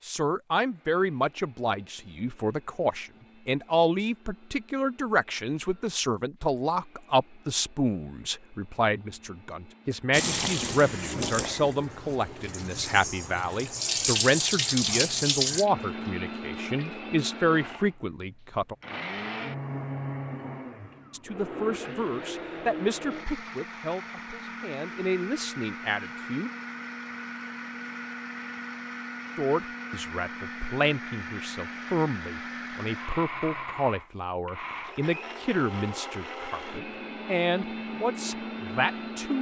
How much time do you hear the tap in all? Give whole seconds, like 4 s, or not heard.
7 s.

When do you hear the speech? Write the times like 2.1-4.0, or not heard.
0.1-18.8, 21.1-26.5, 29.4-39.3.